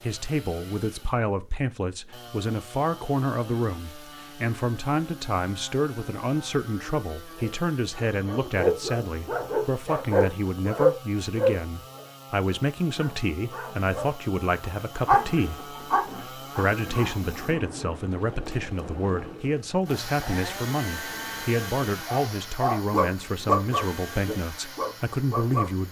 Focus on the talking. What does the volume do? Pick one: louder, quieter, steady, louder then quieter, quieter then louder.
steady.